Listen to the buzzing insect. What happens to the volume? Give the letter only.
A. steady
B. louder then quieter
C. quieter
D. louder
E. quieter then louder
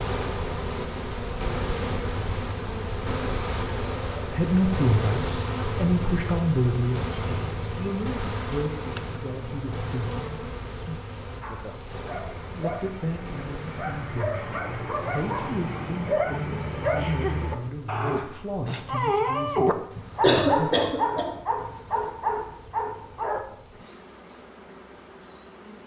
C.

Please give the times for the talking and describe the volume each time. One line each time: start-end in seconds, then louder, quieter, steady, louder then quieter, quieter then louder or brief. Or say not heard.
4.3-11.0 quieter
12.5-20.8 steady.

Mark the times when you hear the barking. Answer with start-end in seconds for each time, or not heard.
11.4-23.4.